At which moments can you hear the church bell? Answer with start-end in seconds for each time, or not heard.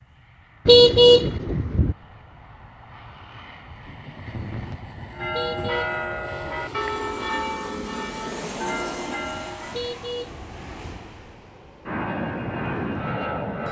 5.1-9.8.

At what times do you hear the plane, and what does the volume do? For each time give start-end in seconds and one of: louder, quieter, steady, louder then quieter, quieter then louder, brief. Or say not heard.
0.0-13.6 louder.